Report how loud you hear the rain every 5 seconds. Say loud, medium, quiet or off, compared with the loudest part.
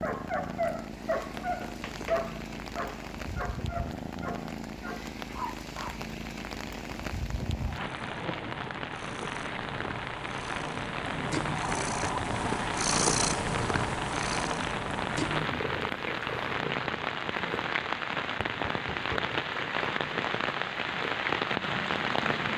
quiet, medium, medium, loud, loud.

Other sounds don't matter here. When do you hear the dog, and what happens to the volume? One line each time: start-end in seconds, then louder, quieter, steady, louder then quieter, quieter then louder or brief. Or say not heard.
0.0-6.0 quieter.